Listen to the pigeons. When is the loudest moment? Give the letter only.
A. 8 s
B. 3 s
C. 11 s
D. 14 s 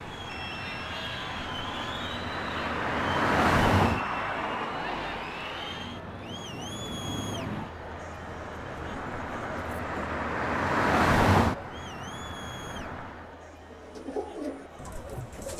D.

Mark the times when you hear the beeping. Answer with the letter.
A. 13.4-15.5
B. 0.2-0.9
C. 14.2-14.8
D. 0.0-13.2
B.